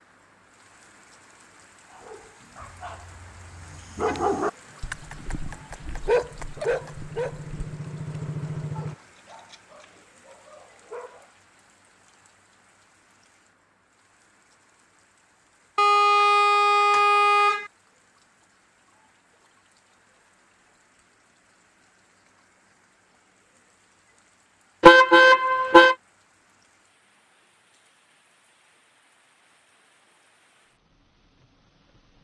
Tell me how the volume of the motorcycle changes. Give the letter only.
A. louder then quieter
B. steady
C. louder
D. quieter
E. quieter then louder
C.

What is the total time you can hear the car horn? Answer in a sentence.
You can hear the car horn for 5 seconds altogether.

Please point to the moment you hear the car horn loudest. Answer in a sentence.
The loudest moment of the car horn is at 25 seconds.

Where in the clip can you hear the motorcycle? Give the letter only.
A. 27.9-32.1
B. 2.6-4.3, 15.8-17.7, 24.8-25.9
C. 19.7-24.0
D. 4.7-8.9
D.